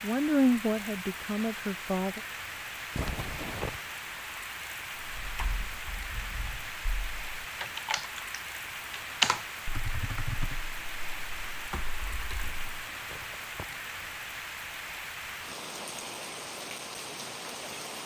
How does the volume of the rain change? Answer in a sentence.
The loudness of the rain stays about the same.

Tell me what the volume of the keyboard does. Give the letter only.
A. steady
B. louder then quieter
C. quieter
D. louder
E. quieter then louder
B.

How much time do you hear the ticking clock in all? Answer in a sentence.
The ticking clock can't be heard in this clip.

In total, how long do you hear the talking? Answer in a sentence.
The talking can be heard for 2 seconds in total.